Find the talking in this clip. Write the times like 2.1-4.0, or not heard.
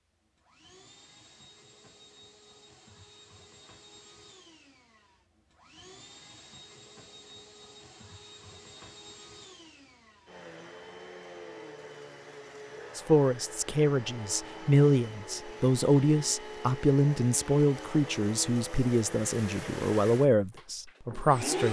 12.9-21.6.